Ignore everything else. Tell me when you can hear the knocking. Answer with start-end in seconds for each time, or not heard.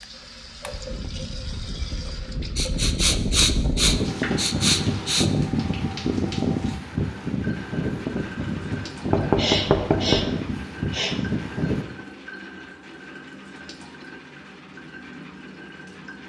9.1-10.3.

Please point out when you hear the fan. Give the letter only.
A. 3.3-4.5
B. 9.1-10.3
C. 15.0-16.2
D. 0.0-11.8
D.